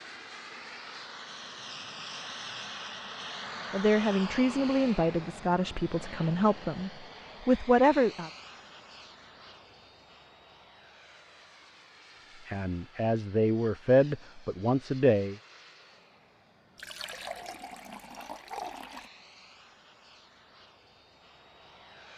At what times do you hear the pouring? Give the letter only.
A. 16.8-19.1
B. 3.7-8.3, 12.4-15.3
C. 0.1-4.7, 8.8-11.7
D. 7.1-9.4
A.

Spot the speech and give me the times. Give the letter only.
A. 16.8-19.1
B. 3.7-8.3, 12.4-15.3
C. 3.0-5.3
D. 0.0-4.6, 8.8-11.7
B.